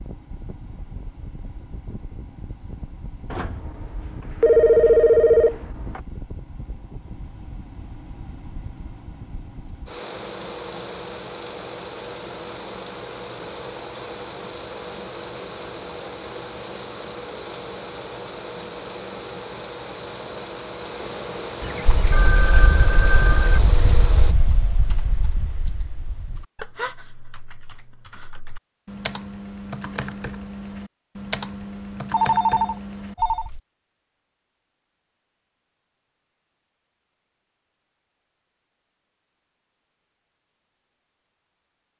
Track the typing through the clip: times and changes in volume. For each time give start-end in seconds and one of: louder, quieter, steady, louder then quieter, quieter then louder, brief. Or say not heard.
21.9-33.6 quieter then louder.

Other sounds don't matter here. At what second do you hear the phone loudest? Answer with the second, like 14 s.
5 s.